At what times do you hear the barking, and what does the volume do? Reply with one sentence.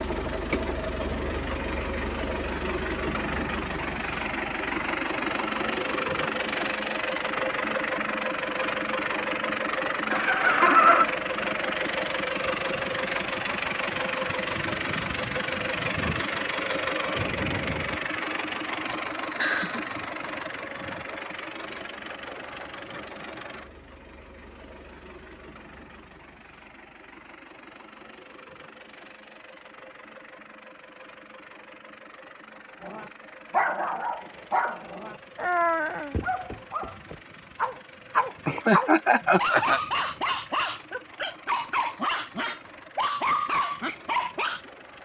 The barking can be heard from 32.8 to 44.6 s, at a steady volume.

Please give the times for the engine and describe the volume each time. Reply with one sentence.
You can hear the engine from 0.0 to 45.0 s, getting quieter.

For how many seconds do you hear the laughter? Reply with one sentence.
The laughter can be heard for 3 seconds in total.